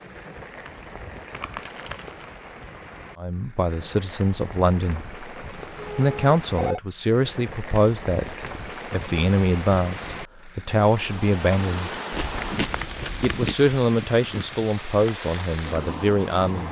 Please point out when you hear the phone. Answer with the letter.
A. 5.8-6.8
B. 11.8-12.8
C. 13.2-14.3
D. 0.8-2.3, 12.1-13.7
A.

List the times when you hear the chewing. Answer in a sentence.
The chewing can be heard from 0.8 to 2.3 s and from 12.1 to 13.7 s.